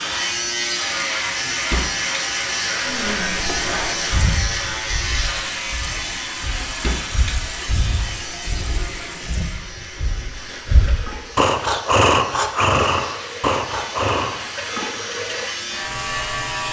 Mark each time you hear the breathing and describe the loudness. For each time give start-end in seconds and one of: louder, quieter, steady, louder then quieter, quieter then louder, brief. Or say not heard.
2.8-14.4 quieter then louder.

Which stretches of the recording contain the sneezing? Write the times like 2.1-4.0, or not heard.
not heard.